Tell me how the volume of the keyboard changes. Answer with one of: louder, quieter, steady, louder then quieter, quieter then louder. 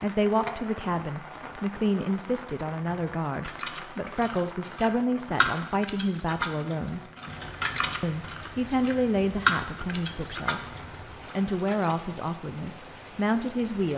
louder then quieter.